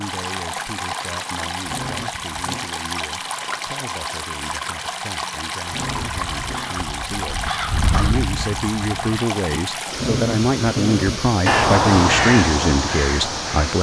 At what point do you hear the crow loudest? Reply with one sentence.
The volume of the crow peaks at 12 seconds.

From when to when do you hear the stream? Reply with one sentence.
The stream can be heard from 0.0 to 13.7 s.